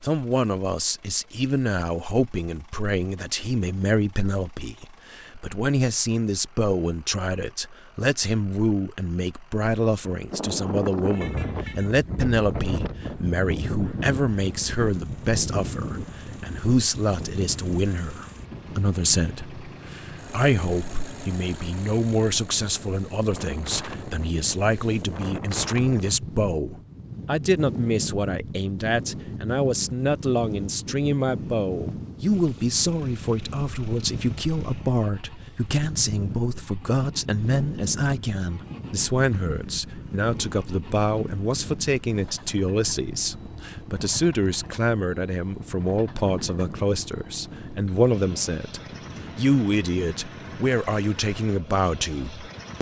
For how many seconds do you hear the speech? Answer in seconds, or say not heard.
53 s.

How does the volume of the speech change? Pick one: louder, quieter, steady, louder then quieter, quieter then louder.
steady.